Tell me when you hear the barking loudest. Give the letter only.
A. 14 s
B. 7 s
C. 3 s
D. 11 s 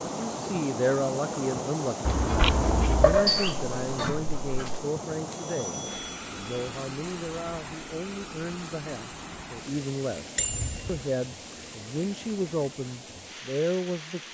C.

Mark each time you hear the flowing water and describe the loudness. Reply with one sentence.
You can hear the flowing water from 0.0 to 14.3 s, getting quieter.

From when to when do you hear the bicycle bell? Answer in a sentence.
The bicycle bell can be heard from 2.0 to 3.2 s, from 5.3 to 6.8 s and from 10.3 to 11.1 s.